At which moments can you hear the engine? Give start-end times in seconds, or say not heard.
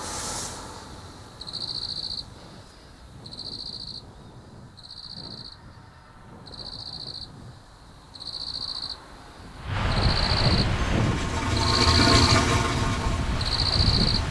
10.7-14.2.